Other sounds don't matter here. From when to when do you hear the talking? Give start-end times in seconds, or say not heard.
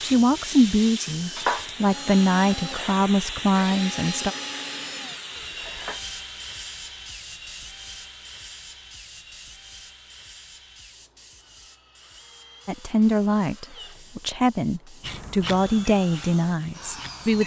0.0-4.3, 12.7-17.4.